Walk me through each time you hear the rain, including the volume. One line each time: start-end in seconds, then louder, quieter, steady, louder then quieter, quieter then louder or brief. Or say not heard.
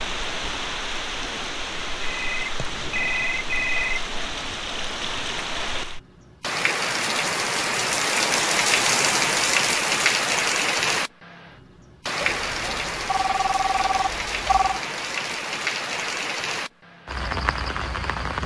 0.0-18.4 louder then quieter.